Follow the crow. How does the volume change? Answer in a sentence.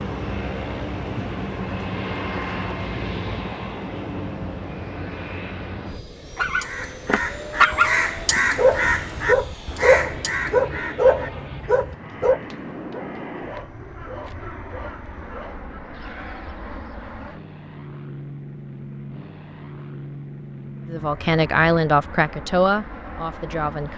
The volume of the crow goes down.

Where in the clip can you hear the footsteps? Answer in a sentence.
You can't hear the footsteps here.